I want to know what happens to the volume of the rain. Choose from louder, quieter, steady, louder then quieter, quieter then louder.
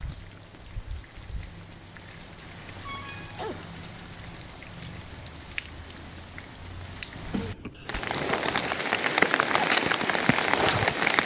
louder.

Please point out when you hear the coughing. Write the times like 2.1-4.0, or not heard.
2.9-3.8, 7.1-8.8.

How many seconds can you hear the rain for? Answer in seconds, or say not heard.
11 s.